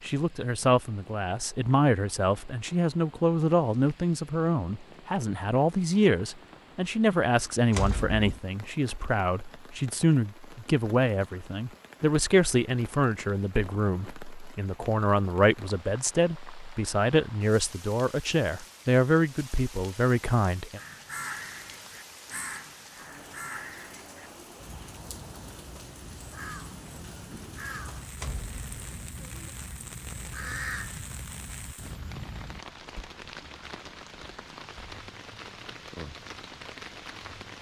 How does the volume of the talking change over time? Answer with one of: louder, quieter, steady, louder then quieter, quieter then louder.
steady.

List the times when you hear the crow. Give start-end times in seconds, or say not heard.
20.8-32.6.